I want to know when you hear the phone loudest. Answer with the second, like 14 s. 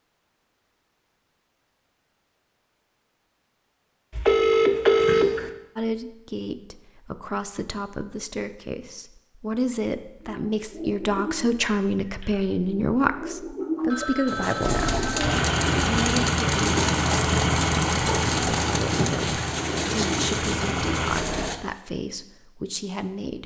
5 s.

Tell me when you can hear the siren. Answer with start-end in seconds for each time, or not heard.
not heard.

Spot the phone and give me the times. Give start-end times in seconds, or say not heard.
4.2-5.5, 13.9-15.8.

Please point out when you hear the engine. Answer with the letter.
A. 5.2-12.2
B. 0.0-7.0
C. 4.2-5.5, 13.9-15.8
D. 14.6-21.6
D.